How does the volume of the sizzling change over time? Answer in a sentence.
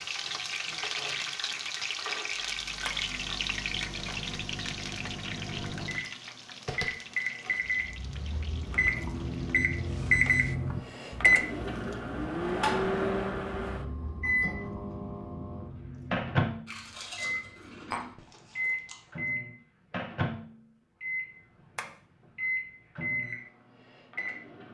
The loudness of the sizzling goes down.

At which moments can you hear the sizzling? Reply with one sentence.
The sizzling can be heard from 0.0 to 10.6 s.